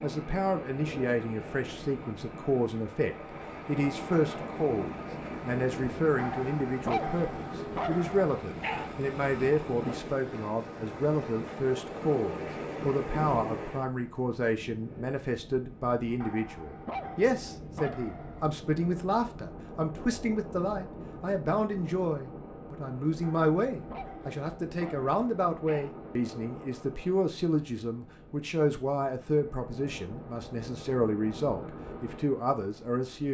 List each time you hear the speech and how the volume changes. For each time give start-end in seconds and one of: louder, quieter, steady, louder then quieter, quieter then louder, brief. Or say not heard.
0.0-33.3 steady.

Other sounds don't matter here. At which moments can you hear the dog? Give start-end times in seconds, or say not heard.
6.2-8.9, 16.2-18.5, 23.2-25.9.